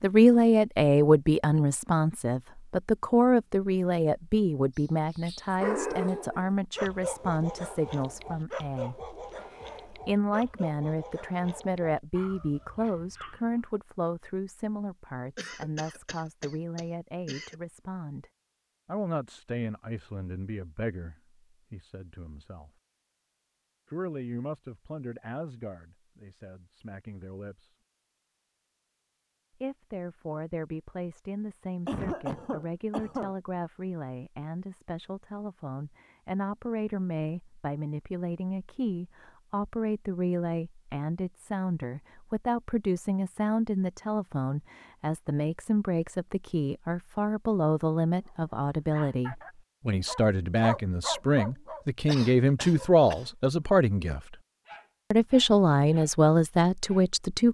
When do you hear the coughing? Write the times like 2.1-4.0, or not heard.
15.3-17.6, 31.9-33.4, 52.0-53.2.